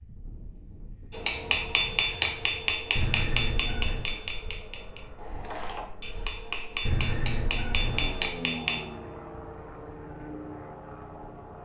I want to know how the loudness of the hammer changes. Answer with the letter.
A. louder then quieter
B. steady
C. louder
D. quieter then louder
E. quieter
D.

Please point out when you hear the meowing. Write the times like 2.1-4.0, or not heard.
3.0-4.1, 6.8-8.2.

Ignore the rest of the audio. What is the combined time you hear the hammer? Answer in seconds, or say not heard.
8 s.